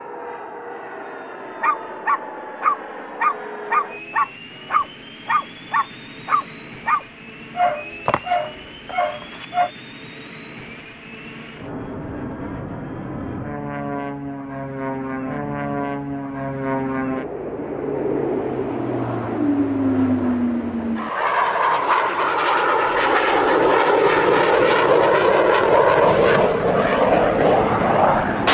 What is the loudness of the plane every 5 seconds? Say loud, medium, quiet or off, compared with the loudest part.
quiet, quiet, quiet, medium, loud, loud.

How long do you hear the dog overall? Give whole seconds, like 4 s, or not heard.
8 s.